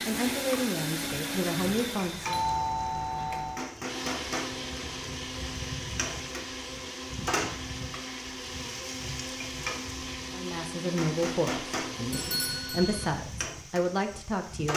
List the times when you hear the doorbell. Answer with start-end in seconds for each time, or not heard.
2.2-3.6, 12.1-13.1.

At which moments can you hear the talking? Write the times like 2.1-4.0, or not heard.
0.1-2.4, 10.3-14.7.